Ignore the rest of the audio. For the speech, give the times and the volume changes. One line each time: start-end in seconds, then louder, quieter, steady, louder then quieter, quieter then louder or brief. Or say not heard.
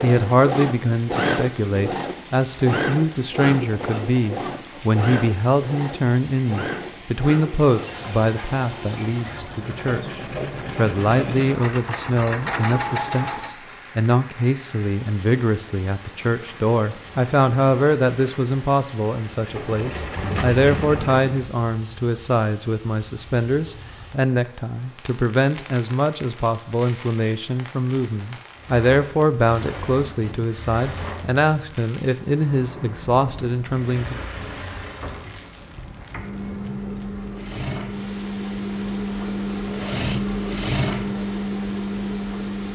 0.0-34.2 steady.